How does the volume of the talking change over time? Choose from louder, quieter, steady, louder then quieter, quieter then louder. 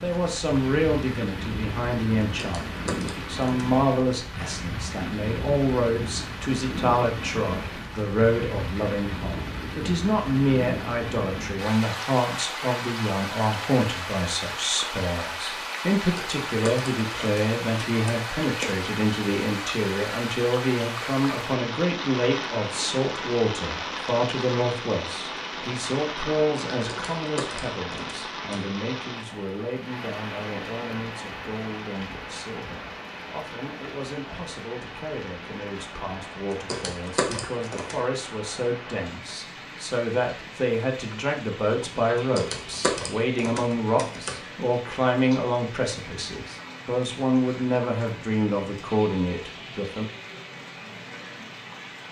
quieter then louder.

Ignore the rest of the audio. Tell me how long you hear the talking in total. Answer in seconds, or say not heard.
50 s.